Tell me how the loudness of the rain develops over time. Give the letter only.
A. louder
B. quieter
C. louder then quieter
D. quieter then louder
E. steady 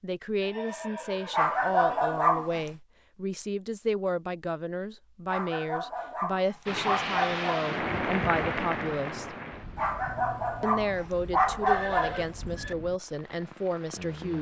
B.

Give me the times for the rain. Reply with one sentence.
The rain can be heard from 6.7 to 14.3 s.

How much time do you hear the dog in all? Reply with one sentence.
The dog can be heard for 6 seconds in total.